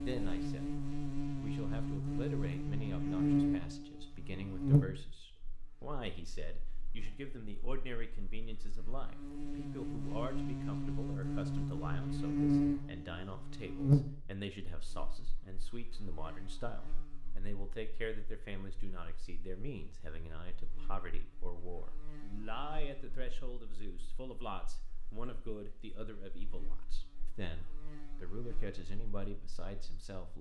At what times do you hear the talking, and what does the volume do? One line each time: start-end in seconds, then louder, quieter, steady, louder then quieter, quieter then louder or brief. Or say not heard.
0.0-0.8 brief
1.4-30.3 steady.